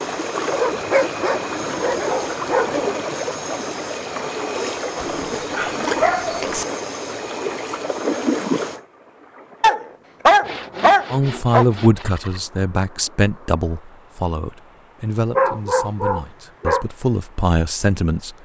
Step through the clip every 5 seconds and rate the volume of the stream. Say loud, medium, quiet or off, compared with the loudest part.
loud, loud, quiet, quiet.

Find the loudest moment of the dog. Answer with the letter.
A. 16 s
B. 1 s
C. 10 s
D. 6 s
C.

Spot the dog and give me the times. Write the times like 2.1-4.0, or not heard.
0.5-3.0, 5.0-6.7, 9.6-11.7, 15.3-16.9.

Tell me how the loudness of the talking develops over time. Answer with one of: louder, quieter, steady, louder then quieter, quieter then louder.
quieter then louder.